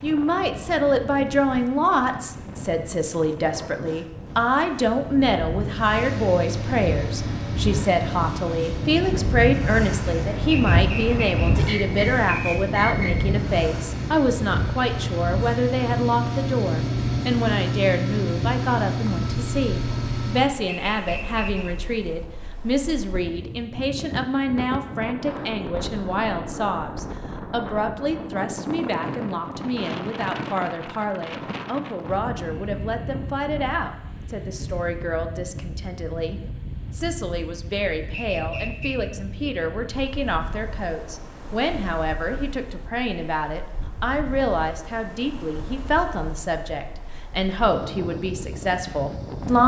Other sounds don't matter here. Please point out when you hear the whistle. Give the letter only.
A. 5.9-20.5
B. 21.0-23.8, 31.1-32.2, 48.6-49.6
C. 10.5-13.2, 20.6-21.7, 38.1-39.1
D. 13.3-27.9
C.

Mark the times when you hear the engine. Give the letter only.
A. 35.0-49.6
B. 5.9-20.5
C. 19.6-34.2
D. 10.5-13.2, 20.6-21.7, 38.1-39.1
B.